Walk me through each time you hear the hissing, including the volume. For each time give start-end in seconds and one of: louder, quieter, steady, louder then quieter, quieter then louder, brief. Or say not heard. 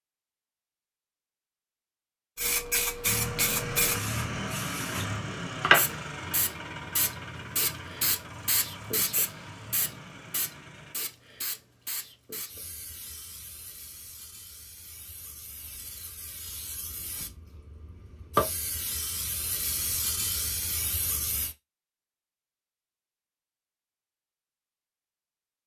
2.4-21.6 quieter then louder.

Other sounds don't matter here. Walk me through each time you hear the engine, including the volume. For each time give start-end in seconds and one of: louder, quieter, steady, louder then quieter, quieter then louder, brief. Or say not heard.
3.0-10.9 quieter.